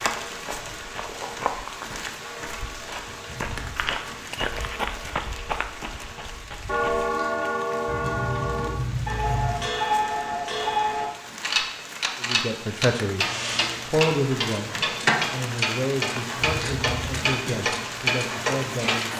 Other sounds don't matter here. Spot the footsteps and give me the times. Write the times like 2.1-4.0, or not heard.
0.0-7.1.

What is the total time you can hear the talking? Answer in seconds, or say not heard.
6 s.